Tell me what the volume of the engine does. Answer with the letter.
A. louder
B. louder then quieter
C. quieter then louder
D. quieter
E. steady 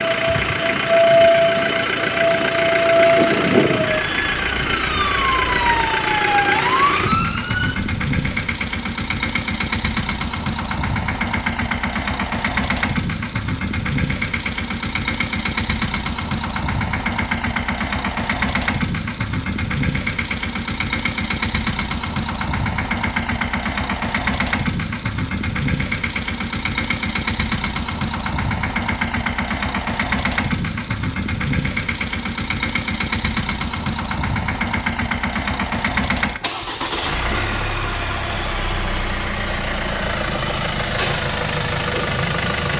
E.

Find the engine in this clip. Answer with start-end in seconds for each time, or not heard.
0.0-42.7.